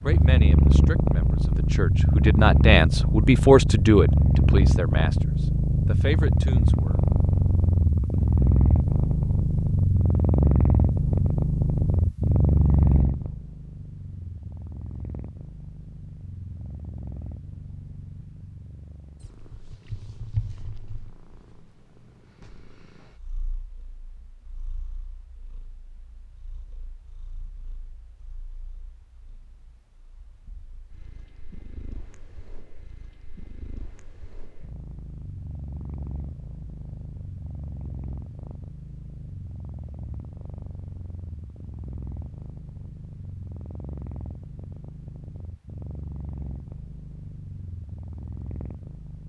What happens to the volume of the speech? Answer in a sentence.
The loudness of the speech goes up, then down.